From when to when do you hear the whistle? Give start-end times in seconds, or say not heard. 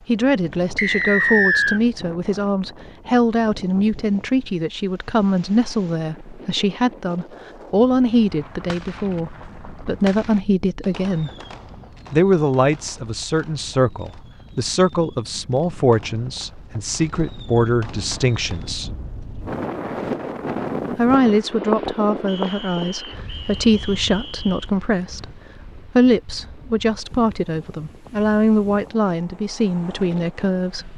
0.8-1.8, 22.2-24.7.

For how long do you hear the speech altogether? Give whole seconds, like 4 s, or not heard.
28 s.